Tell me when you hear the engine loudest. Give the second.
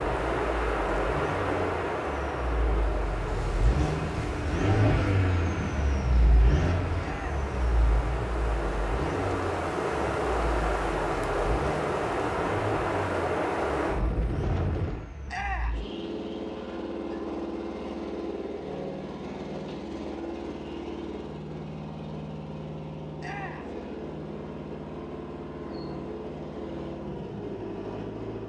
5 s.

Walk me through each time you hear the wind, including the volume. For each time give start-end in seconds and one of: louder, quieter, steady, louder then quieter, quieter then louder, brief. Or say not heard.
0.0-15.1 quieter then louder.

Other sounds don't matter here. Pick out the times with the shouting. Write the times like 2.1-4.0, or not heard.
7.0-7.4, 15.2-15.8, 23.2-23.8.